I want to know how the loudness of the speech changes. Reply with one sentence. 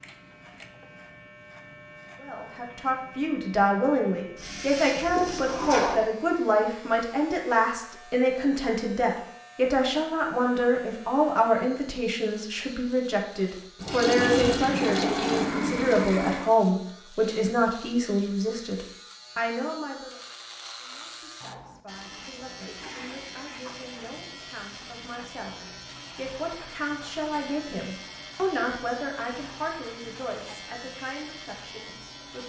The loudness of the speech goes down, then up.